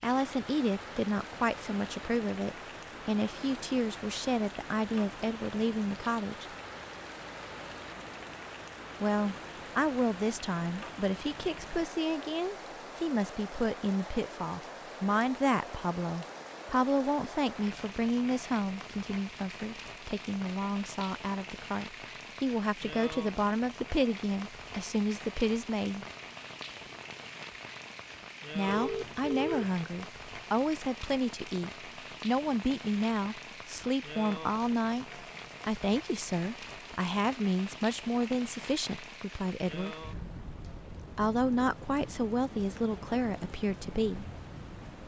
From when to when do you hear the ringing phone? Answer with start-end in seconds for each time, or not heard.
28.6-29.8.